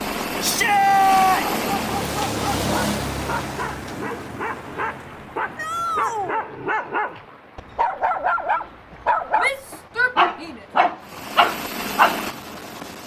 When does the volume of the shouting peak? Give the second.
1 s.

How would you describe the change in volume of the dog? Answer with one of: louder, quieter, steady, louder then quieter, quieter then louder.
louder.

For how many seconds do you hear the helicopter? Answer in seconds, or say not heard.
4 s.